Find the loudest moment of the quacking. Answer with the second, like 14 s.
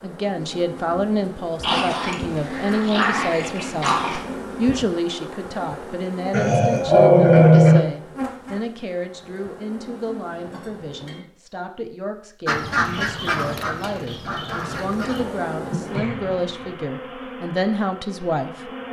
13 s.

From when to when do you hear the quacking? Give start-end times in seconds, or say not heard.
12.4-15.2.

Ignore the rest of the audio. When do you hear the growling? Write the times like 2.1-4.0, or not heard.
1.6-4.2, 6.3-7.8, 15.9-16.8.